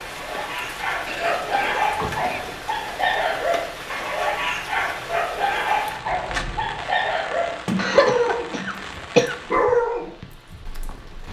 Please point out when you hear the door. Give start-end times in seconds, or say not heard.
1.9-2.6, 7.7-8.8.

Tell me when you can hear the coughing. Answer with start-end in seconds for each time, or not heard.
1.1-2.5, 7.8-9.3.